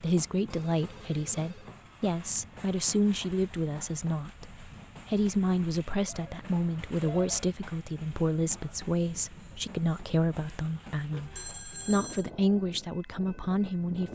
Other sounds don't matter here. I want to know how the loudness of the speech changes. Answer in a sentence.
The volume of the speech stays about the same.